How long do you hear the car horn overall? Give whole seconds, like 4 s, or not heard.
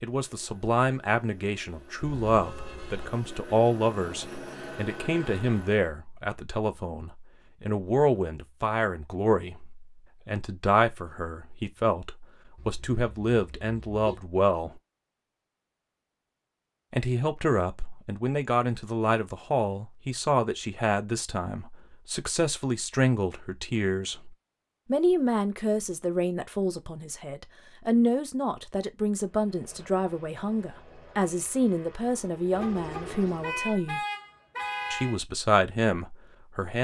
5 s.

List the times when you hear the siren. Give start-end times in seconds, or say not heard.
not heard.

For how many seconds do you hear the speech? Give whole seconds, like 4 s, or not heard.
33 s.